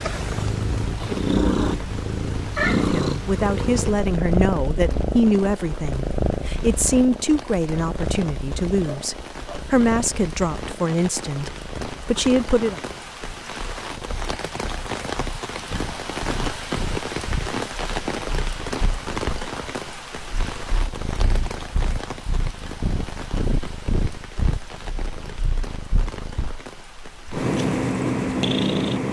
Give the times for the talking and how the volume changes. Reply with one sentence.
The talking can be heard from 2.6 to 12.8 s, at a steady volume.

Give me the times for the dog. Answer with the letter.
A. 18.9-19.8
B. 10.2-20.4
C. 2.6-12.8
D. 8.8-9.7
D.